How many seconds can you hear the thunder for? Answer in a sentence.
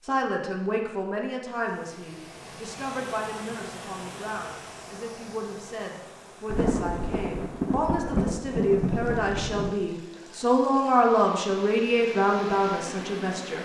You can hear the thunder for 3 seconds altogether.